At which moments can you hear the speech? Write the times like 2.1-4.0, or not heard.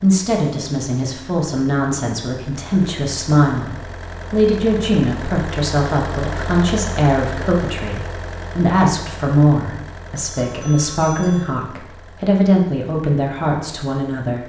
0.0-14.4.